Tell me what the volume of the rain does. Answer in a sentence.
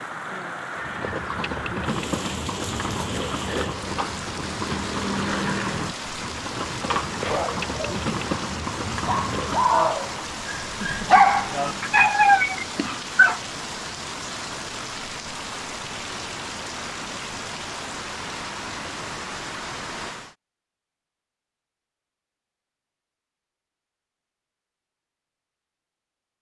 The volume of the rain stays about the same.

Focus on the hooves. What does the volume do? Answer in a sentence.
The loudness of the hooves goes down.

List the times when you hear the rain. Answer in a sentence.
The rain can be heard from 0.0 to 20.4 s.